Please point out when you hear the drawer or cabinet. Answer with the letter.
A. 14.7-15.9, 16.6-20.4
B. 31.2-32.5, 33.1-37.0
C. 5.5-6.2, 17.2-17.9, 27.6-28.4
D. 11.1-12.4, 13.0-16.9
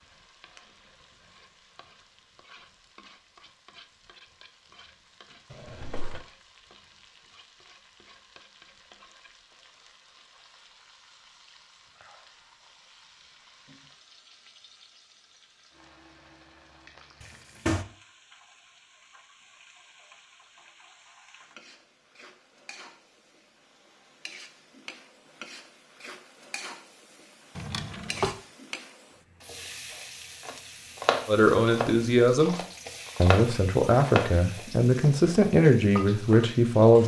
C.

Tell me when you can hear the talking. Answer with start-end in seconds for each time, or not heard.
31.2-32.5, 33.1-37.0.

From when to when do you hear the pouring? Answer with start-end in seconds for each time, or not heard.
not heard.